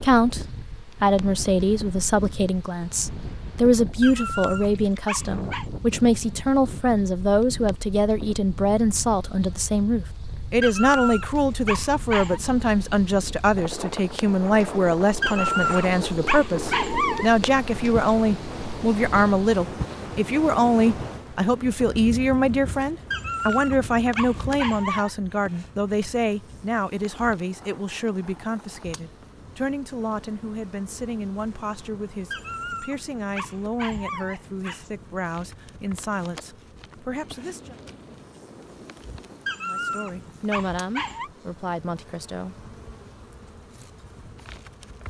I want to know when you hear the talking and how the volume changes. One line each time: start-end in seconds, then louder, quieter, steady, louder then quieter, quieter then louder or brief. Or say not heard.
0.0-37.8 quieter
39.6-42.5 brief.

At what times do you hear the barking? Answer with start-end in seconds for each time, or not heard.
4.0-5.7, 10.6-12.4, 15.2-17.3, 23.1-25.1, 32.3-34.9, 39.5-41.3.